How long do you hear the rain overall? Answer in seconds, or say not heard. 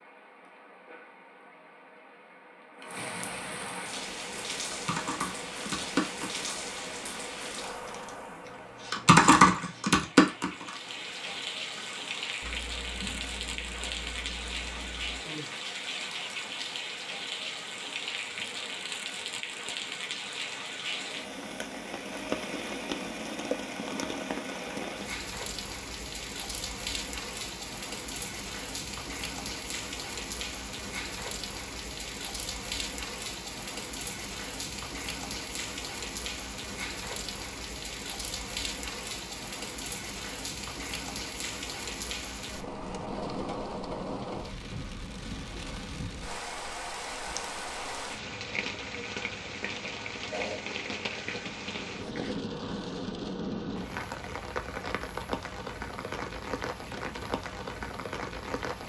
59 s.